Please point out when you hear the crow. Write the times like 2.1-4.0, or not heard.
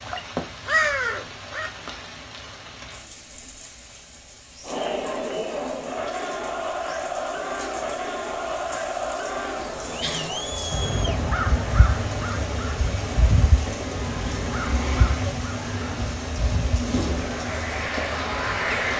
0.0-1.7, 10.0-18.9.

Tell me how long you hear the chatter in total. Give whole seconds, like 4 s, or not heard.
14 s.